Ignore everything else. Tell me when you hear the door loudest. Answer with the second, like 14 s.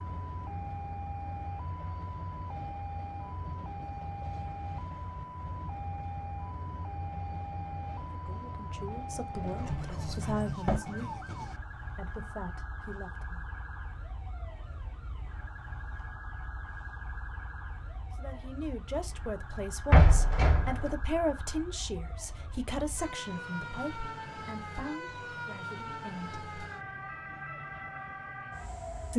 20 s.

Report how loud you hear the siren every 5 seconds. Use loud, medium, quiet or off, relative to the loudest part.
loud, loud, loud, medium, loud, loud.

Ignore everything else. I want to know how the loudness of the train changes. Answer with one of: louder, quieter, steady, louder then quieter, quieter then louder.
steady.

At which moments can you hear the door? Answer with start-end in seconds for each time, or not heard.
9.3-10.8, 19.9-20.9.